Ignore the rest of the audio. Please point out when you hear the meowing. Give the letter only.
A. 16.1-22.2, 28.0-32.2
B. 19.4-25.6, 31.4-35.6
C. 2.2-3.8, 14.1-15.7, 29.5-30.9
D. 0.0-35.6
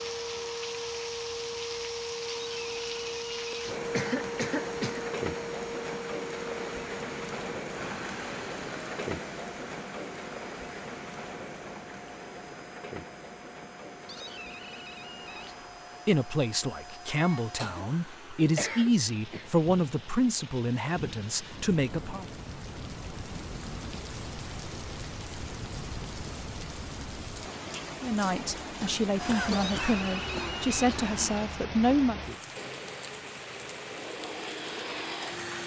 C.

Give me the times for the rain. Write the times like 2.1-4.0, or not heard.
0.0-35.6.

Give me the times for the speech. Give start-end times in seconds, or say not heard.
16.1-22.2, 28.0-32.2.